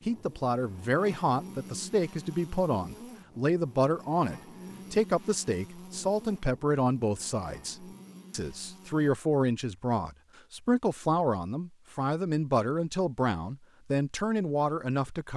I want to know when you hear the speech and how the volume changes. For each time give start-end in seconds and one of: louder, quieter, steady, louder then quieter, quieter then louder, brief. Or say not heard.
0.1-15.3 steady.